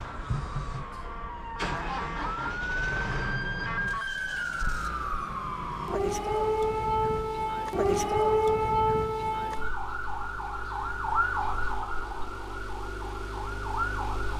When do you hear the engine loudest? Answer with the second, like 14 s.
2 s.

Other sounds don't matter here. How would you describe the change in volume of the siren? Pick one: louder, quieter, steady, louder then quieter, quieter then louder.
louder then quieter.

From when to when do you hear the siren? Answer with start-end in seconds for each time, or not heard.
0.0-14.3.